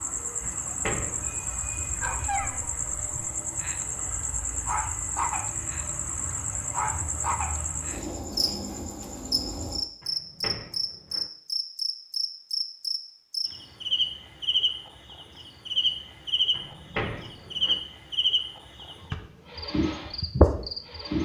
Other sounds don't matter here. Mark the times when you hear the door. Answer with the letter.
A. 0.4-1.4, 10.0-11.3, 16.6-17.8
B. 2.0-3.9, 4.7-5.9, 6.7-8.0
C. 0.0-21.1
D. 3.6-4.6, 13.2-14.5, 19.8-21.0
A.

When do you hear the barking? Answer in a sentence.
You can hear the barking from 2.0 to 3.9 s, from 4.7 to 5.9 s and from 6.7 to 8.0 s.